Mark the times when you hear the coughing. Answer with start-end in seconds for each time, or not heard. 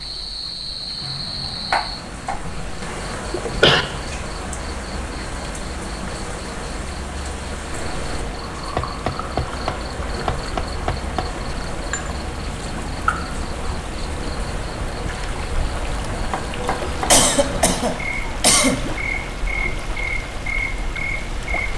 2.5-3.9, 17.1-18.9.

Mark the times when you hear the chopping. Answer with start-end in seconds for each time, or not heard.
1.0-2.5, 8.8-11.3, 16.1-17.2.